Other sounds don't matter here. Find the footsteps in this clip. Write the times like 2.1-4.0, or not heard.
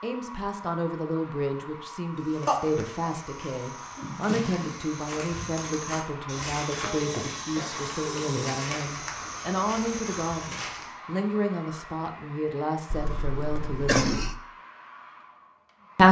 2.1-10.9.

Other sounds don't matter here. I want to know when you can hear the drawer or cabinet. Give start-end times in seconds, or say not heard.
4.0-4.8.